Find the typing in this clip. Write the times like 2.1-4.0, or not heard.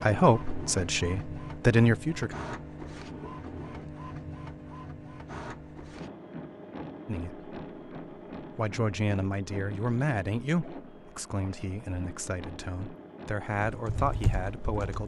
13.7-15.0.